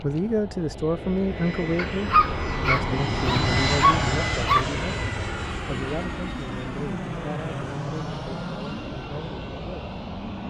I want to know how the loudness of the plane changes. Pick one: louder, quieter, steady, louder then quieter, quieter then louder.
louder then quieter.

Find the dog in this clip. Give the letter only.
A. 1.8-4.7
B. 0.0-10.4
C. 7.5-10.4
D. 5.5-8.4
A.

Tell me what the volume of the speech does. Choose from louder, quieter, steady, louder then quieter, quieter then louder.
quieter.